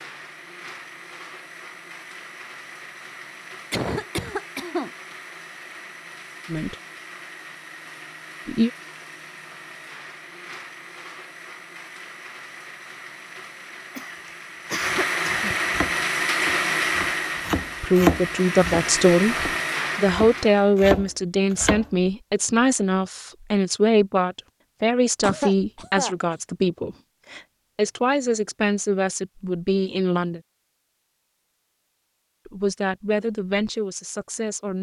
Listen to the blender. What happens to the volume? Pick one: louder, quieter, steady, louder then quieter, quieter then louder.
louder.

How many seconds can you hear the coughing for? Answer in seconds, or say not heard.
4 s.